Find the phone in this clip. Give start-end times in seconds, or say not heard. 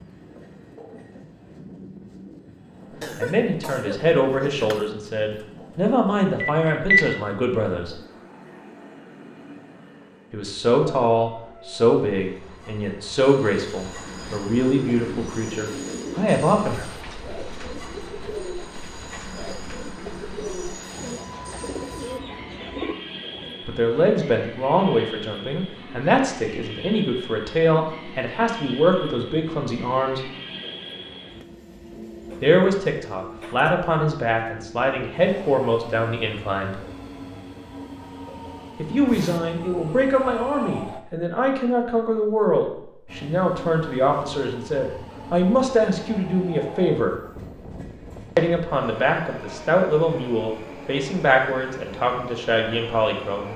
6.4-7.0, 39.0-41.0.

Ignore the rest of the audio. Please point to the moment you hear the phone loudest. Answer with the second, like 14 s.
7 s.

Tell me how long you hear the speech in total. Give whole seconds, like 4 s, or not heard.
36 s.